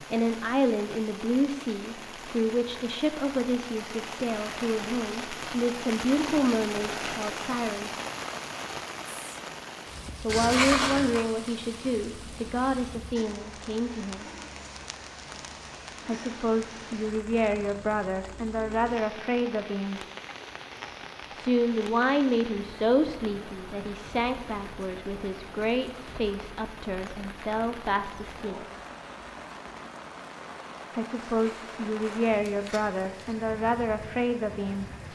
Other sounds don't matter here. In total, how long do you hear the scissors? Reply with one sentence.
The scissors can be heard for 3 seconds in total.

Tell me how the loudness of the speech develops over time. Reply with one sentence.
The volume of the speech stays about the same.